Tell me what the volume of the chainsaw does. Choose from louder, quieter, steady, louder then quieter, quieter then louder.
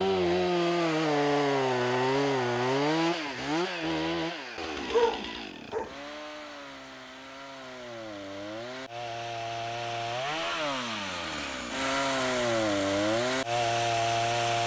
quieter then louder.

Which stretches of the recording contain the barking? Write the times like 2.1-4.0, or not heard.
4.8-5.9.